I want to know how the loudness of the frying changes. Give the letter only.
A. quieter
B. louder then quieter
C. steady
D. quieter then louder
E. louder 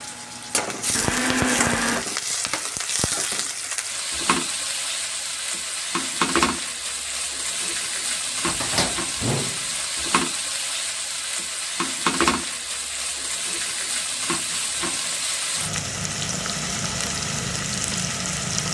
C.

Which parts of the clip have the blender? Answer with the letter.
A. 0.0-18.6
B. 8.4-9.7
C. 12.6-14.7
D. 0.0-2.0
D.